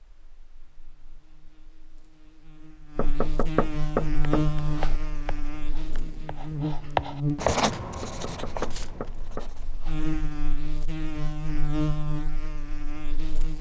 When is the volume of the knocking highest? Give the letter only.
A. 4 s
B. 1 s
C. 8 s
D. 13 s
A.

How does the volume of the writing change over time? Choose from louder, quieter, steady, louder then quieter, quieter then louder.
louder then quieter.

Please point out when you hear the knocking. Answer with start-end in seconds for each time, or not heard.
3.0-5.0, 8.0-10.0.